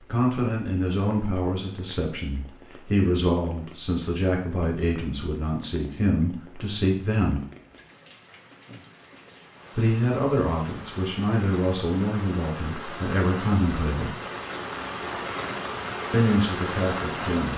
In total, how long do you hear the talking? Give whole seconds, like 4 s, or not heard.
13 s.